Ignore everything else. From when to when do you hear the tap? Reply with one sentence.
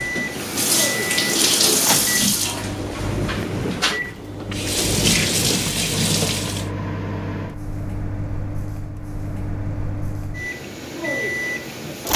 You can hear the tap from 0.0 to 6.7 s.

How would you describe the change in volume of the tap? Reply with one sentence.
The volume of the tap goes down, then up.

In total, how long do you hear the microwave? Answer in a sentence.
You can hear the microwave for 12 seconds altogether.